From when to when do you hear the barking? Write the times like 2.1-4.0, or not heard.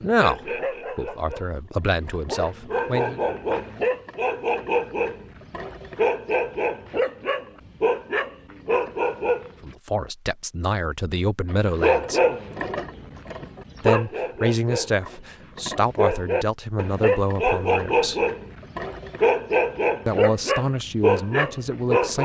0.0-9.8, 11.5-22.2.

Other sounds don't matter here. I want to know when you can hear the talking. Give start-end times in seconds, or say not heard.
0.0-3.2, 9.6-12.2, 13.8-18.2, 20.1-22.2.